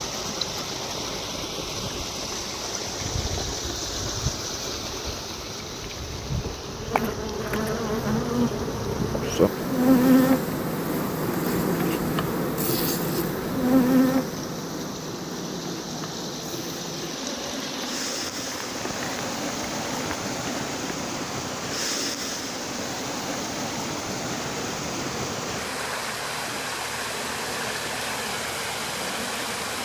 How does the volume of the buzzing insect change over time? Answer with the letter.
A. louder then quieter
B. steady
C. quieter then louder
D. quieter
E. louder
A.